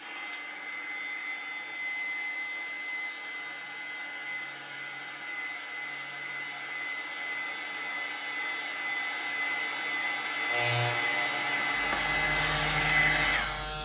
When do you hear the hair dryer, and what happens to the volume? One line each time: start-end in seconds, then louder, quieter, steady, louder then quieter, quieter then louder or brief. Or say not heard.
0.0-13.7 louder.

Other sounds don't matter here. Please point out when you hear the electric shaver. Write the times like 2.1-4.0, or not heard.
10.4-13.7.